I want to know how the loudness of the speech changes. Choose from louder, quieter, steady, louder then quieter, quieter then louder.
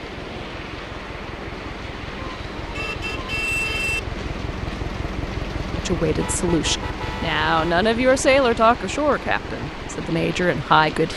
louder then quieter.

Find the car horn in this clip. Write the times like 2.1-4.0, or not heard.
2.1-4.0, 6.2-7.8.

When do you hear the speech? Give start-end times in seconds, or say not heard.
5.7-11.1.